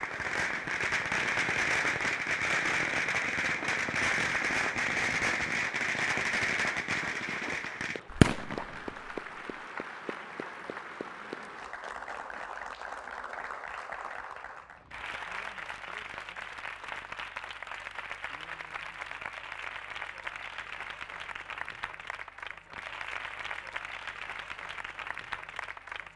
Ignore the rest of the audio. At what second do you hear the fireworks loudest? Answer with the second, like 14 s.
8 s.